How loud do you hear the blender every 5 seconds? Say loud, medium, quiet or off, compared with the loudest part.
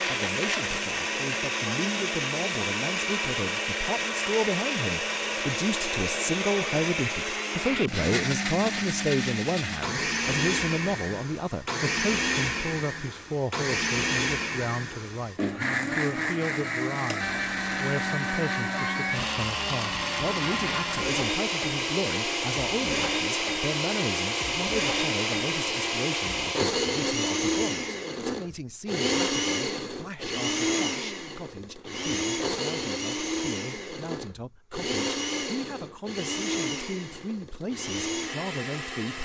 loud, loud, loud, loud, loud, loud, loud, medium.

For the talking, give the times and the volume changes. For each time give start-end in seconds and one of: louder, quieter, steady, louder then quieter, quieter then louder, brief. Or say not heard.
0.0-39.2 quieter.